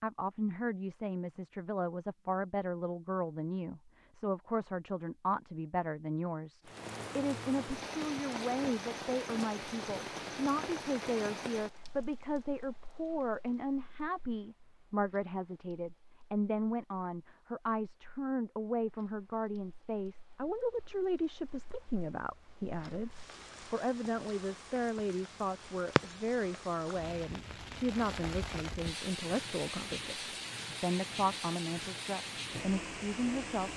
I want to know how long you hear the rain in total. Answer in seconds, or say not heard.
27 s.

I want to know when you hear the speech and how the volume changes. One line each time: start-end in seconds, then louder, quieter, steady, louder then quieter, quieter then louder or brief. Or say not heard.
0.0-33.7 steady.